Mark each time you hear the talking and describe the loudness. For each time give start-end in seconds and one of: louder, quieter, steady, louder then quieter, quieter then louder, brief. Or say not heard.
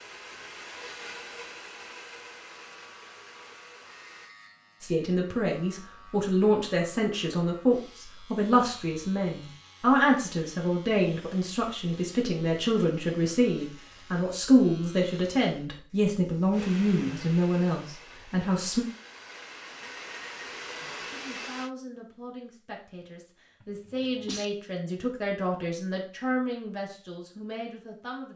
4.8-18.9 steady
20.8-28.3 louder then quieter.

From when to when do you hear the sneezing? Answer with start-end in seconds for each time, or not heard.
23.6-24.4.